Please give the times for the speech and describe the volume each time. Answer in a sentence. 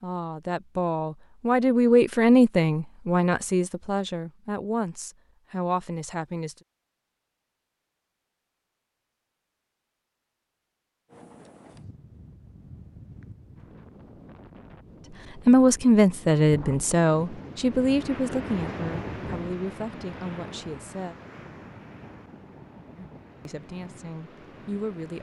You can hear the speech from 0.0 to 6.5 s, getting louder then quieter; from 15.4 to 21.1 s, getting quieter; and briefly from 22.9 to 25.1 s.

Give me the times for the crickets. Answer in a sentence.
You can't hear the crickets here.